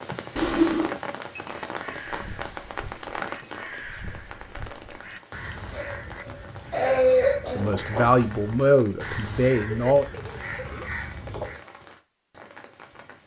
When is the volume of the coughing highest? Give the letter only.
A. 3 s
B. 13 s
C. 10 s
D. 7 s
D.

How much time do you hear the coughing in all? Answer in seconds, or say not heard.
2 s.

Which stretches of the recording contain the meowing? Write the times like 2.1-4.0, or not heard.
0.3-0.9, 9.7-10.9.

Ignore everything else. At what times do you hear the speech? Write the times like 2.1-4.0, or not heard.
7.5-10.1.